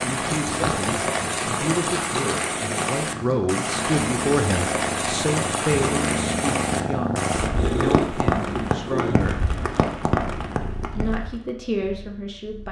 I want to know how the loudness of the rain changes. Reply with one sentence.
The volume of the rain stays about the same.